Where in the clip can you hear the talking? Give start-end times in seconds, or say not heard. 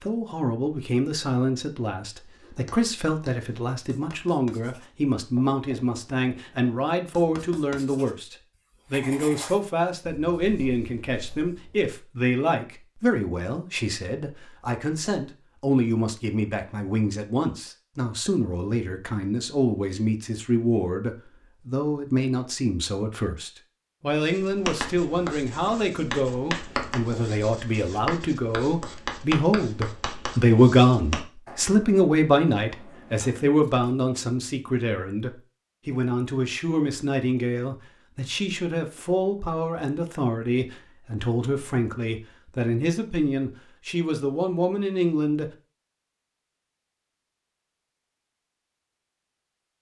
0.0-45.5.